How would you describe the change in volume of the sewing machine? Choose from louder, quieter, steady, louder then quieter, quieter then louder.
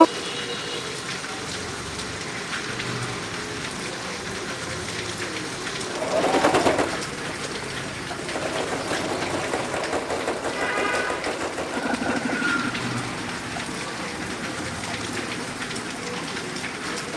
louder then quieter.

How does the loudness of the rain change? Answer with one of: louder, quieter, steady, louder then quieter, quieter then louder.
steady.